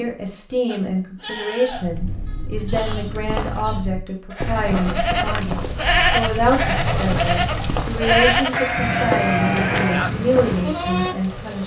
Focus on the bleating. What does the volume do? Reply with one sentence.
The volume of the bleating goes up.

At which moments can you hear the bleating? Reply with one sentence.
You can hear the bleating from 0.7 to 11.2 s.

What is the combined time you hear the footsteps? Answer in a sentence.
You can hear the footsteps for 9 seconds altogether.